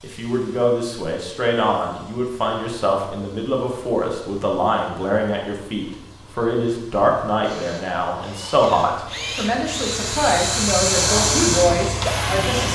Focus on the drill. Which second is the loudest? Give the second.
11 s.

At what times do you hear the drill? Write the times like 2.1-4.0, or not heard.
7.4-12.6.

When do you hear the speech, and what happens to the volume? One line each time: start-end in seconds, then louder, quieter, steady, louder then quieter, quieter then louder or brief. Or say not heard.
0.0-12.6 steady.